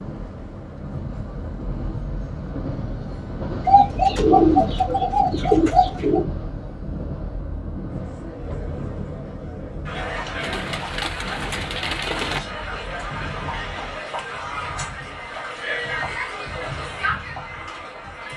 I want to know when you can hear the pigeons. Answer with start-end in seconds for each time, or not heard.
3.6-6.2, 10.4-12.4.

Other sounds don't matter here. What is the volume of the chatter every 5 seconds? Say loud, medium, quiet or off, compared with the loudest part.
off, medium, loud, loud.